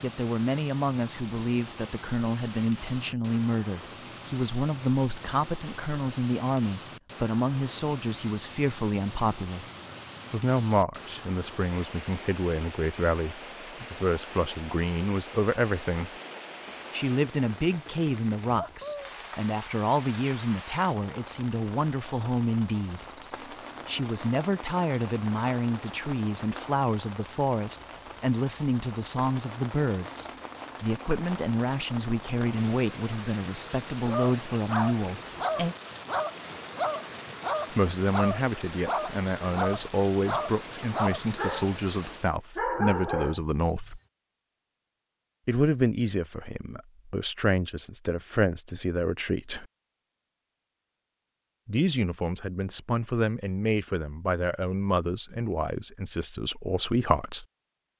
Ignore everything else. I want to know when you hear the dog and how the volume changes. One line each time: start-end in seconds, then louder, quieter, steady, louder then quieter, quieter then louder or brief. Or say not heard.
34.0-41.7 steady
42.5-43.9 brief.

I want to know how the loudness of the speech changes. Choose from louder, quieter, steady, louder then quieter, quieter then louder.
steady.